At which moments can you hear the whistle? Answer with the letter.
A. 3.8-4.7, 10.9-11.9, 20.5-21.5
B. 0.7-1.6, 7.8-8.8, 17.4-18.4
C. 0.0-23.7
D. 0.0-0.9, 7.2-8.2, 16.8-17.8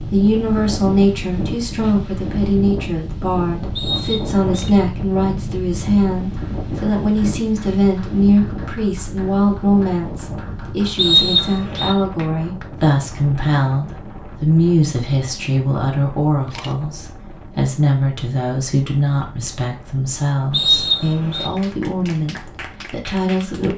A.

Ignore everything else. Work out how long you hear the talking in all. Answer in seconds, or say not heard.
24 s.